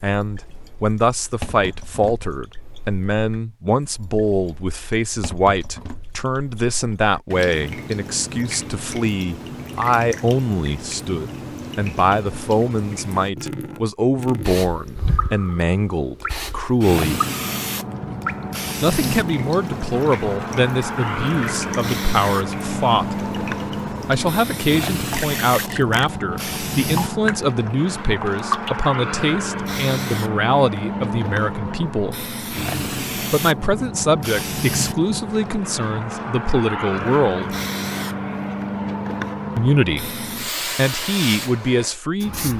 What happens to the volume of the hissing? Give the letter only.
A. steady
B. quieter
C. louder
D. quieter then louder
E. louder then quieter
A.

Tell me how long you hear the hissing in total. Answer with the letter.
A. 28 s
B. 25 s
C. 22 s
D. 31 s
A.